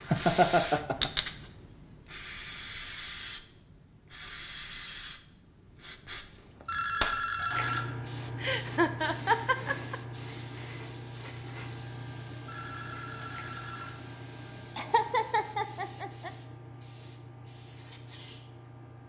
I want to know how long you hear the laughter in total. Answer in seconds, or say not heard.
4 s.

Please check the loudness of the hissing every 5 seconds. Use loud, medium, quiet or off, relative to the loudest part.
loud, loud, medium, medium.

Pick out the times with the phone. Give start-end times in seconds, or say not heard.
6.7-7.8, 12.4-14.0.